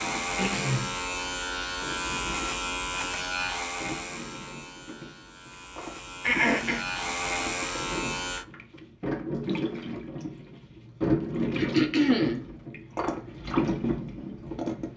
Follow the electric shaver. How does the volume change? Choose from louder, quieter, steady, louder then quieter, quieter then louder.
quieter then louder.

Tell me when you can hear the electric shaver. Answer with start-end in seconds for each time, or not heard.
0.0-8.4.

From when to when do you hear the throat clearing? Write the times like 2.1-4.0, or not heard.
0.3-1.0, 6.2-6.8, 11.6-12.4.